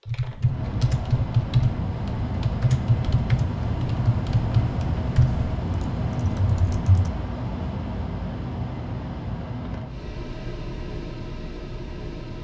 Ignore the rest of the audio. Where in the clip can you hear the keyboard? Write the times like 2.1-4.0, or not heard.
0.1-7.1.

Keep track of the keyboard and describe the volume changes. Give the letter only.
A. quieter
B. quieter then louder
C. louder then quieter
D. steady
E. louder
A.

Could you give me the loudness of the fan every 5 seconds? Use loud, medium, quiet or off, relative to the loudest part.
loud, loud, medium.